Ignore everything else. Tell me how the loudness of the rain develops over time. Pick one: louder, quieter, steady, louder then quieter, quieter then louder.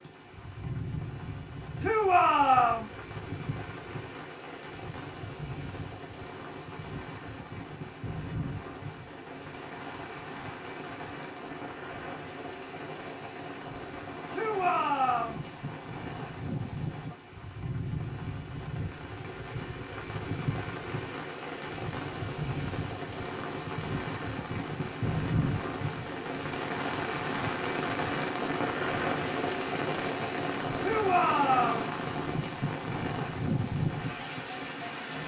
louder.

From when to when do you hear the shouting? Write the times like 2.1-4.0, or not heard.
1.8-2.9, 14.3-15.4, 30.8-31.9.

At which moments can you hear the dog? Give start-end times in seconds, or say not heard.
not heard.